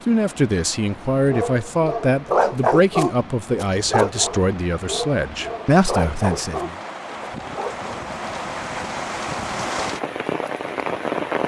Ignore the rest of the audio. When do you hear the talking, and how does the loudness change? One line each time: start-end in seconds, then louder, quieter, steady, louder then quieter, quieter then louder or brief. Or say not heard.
0.1-6.8 steady.